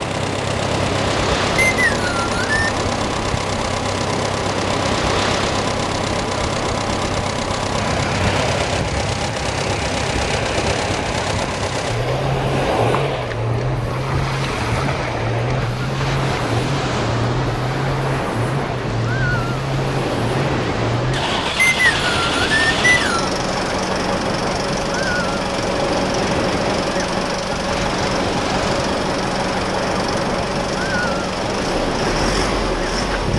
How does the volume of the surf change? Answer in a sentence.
The loudness of the surf stays about the same.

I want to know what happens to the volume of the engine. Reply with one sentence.
The loudness of the engine stays about the same.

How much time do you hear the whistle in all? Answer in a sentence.
You can hear the whistle for 3 seconds altogether.